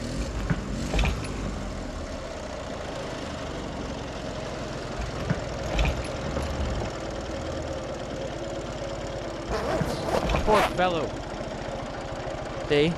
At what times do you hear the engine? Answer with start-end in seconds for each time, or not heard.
0.0-12.9.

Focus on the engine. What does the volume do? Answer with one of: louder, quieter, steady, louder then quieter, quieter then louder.
steady.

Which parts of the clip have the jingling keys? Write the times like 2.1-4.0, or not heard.
0.1-1.6, 5.0-6.9, 9.6-10.6.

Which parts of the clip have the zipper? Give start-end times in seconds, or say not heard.
9.4-10.8.